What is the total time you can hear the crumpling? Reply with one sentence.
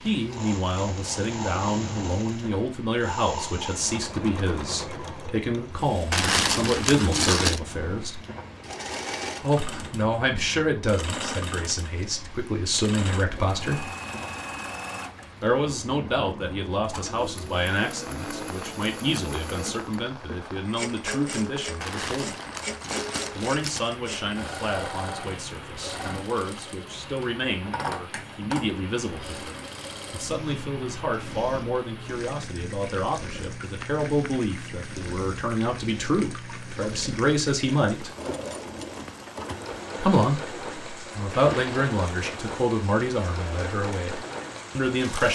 You can hear the crumpling for 4 seconds altogether.